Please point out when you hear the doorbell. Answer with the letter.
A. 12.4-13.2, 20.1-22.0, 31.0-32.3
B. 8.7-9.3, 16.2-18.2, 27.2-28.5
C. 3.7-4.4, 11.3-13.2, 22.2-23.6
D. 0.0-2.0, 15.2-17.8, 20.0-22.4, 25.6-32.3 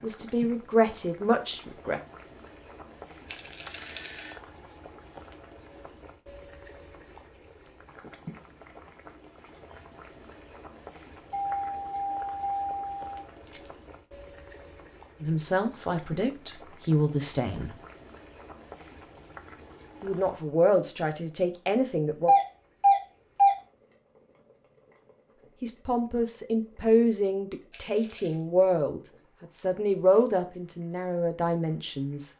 C.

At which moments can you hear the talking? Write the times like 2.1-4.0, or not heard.
0.0-2.0, 15.2-17.8, 20.0-22.4, 25.6-32.3.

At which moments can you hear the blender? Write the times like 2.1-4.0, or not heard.
not heard.